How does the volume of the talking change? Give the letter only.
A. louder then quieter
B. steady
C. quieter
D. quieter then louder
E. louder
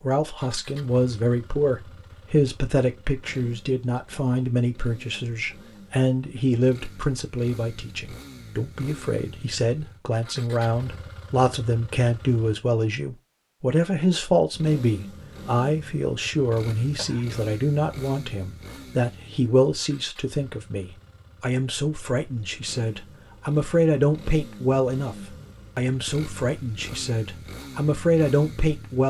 B.